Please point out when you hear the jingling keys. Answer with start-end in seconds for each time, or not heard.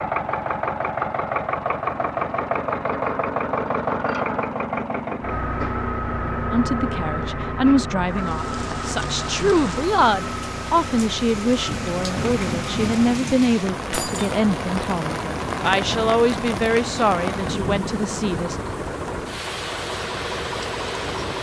13.9-14.4.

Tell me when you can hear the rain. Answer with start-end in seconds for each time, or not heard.
8.1-21.3.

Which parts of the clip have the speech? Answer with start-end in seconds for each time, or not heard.
6.5-18.6.